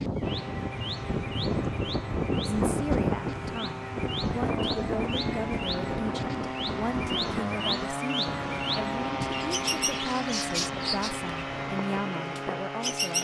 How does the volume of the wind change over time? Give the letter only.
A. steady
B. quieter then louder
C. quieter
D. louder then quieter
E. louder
C.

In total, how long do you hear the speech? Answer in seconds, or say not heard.
11 s.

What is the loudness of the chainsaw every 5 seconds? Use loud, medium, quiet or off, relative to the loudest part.
medium, loud, loud.